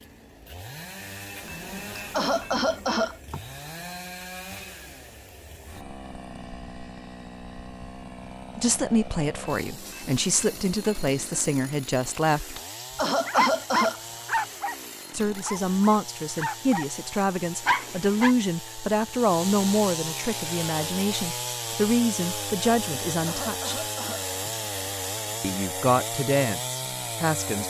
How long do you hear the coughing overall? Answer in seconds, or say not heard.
4 s.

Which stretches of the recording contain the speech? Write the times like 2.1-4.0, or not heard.
8.6-12.6, 15.1-23.8, 25.4-27.6.